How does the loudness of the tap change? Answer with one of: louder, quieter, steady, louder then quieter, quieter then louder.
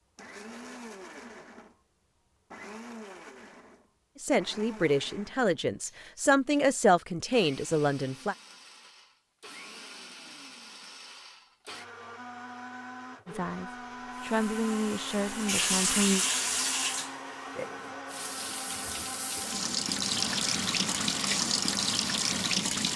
quieter then louder.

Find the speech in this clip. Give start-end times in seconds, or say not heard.
4.2-8.3, 13.2-16.2.